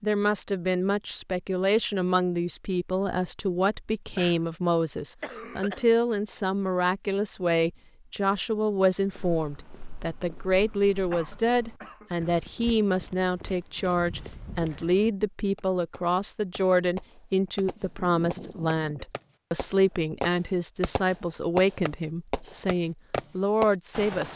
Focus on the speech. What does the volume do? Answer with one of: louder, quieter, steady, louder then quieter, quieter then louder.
steady.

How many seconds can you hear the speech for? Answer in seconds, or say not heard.
24 s.